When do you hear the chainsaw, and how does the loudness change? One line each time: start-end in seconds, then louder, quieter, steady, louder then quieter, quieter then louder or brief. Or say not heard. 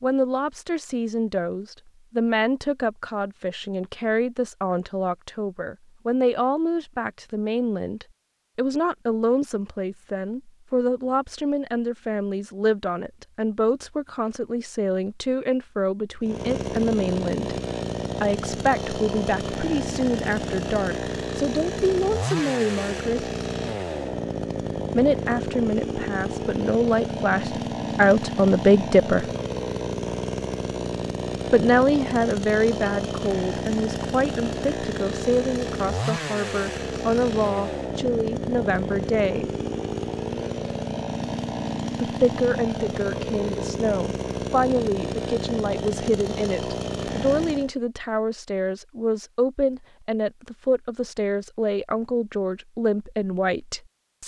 16.2-47.7 steady.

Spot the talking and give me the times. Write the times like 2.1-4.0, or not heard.
0.0-17.6, 18.2-23.3, 24.9-29.2, 31.5-39.5, 42.0-54.2.